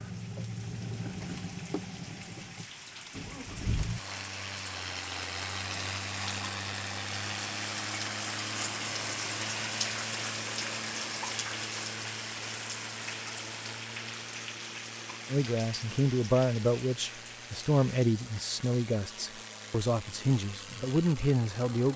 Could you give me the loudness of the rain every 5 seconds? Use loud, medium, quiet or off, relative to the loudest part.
medium, loud, loud, medium, off.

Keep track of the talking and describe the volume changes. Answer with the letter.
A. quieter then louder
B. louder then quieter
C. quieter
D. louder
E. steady
E.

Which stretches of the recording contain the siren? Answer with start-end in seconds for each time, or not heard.
not heard.